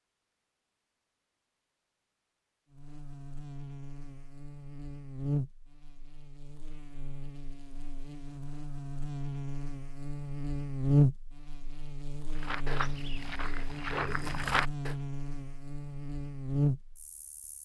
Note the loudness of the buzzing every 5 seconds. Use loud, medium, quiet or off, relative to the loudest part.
quiet, medium, loud, loud.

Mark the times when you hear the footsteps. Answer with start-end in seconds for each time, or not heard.
12.3-14.9.